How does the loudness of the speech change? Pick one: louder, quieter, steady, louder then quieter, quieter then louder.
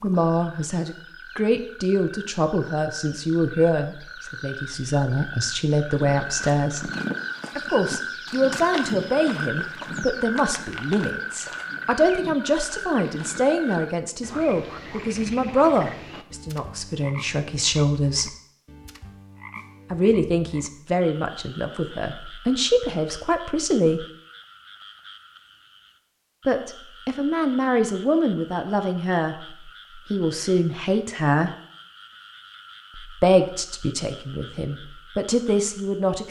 steady.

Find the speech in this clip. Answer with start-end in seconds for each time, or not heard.
0.0-6.9, 7.5-18.3, 19.9-24.1, 26.4-31.5, 33.0-36.2.